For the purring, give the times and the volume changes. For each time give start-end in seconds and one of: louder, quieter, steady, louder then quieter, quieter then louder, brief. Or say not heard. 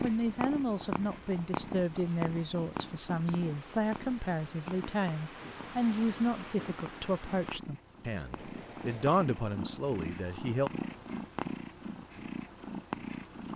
0.0-13.5 quieter then louder.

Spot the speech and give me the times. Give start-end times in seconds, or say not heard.
0.0-10.7.